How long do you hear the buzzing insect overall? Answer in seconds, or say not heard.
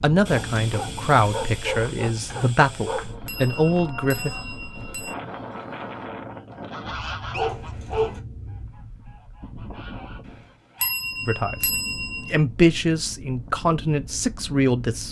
not heard.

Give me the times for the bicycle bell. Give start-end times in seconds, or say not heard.
3.2-5.2, 10.8-12.3.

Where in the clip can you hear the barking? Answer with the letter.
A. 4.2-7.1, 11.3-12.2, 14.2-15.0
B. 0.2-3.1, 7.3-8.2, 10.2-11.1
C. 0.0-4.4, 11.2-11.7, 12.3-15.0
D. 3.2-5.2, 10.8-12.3
B.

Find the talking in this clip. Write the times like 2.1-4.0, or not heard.
0.0-4.4, 11.2-11.7, 12.3-15.0.